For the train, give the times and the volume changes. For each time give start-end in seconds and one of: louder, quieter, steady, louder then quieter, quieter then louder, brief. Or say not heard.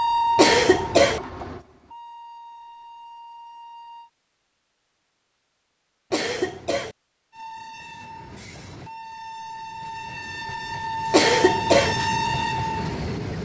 0.0-4.1 quieter
7.3-13.4 louder.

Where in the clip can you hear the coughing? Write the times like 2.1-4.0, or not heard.
0.3-1.2, 6.1-7.0, 11.1-11.9.